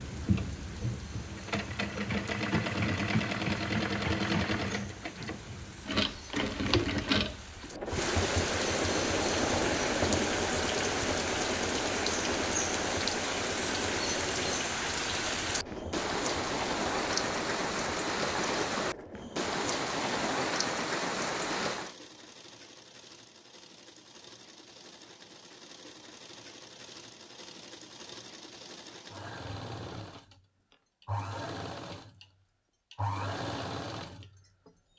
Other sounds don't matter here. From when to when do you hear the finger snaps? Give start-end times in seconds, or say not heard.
not heard.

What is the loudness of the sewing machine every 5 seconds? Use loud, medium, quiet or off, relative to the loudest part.
loud, loud, loud, medium, quiet, quiet, medium.